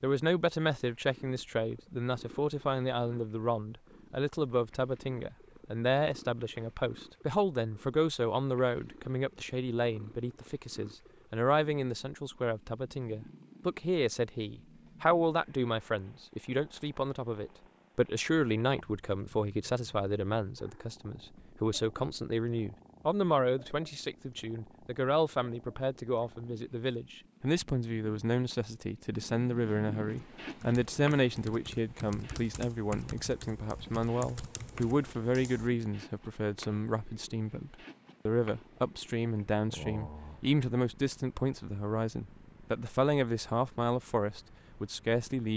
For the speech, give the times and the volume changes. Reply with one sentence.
You can hear the speech from 0.0 to 45.5 s, at a steady volume.